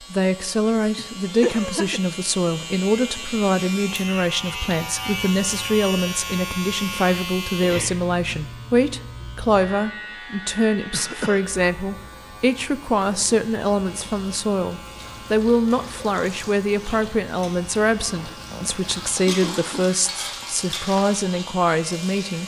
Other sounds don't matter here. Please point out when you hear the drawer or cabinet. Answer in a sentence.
You can't hear the drawer or cabinet here.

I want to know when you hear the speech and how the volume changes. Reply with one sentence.
The speech can be heard from 0.0 to 22.4 s, at a steady volume.